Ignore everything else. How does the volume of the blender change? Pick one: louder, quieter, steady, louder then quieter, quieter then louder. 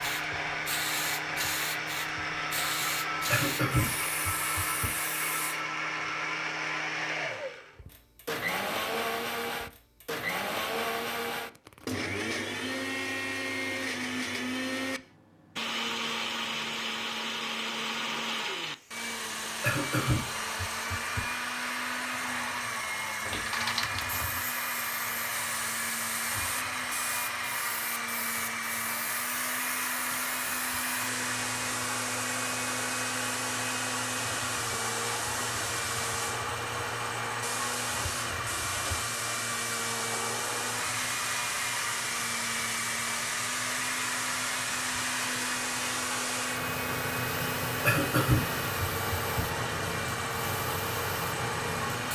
steady.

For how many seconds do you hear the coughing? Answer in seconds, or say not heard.
5 s.